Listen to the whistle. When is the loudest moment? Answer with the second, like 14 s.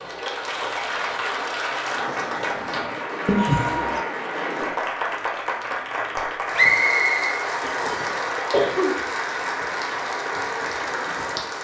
7 s.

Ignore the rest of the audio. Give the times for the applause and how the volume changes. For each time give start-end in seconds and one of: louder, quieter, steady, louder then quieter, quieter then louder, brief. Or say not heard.
0.0-11.5 steady.